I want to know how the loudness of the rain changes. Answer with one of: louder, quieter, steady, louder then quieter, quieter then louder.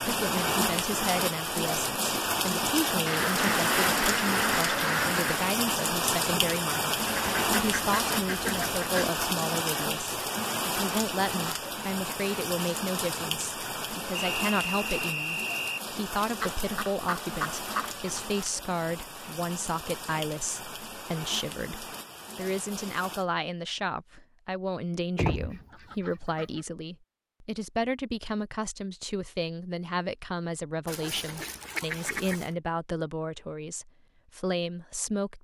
quieter.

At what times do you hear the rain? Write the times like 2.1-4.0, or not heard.
0.0-23.2.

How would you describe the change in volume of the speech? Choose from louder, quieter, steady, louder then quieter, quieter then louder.
steady.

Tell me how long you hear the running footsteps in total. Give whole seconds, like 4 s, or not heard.
not heard.